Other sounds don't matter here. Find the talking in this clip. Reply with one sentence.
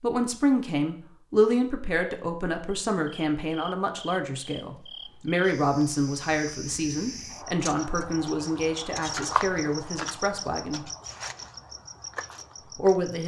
The talking can be heard from 0.0 to 10.8 s and from 12.8 to 13.2 s.